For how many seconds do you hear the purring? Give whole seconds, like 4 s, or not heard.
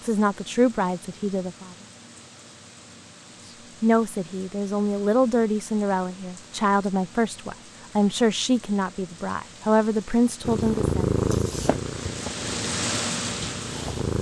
4 s.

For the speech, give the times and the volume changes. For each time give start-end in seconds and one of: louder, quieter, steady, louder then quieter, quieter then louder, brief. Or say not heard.
0.0-1.8 brief
3.5-11.1 steady.